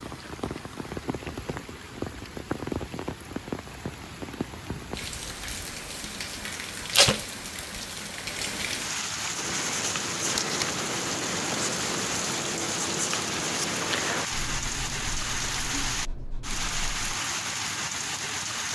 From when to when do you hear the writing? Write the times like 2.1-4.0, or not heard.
9.2-17.1.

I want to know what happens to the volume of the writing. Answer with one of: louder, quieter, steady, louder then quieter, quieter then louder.
quieter.